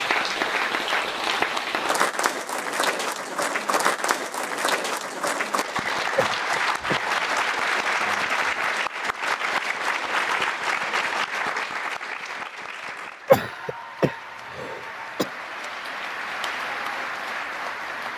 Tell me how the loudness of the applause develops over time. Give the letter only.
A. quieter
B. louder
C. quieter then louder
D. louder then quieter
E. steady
A.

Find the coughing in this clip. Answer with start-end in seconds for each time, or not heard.
6.2-7.0, 13.2-15.2.